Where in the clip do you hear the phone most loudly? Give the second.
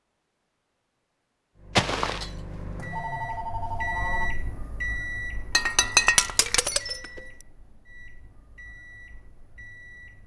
2 s.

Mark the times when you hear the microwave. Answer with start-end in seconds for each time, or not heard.
1.6-10.2.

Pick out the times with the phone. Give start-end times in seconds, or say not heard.
1.8-4.3.